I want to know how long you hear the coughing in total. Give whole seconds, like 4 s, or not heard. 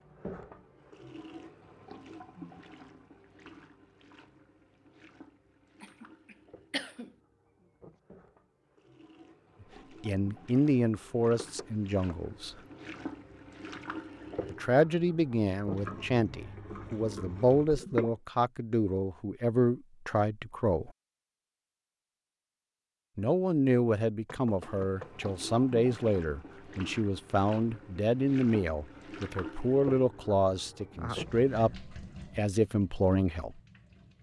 2 s.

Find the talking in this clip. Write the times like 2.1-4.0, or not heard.
10.0-12.6, 14.5-20.9, 23.1-33.6.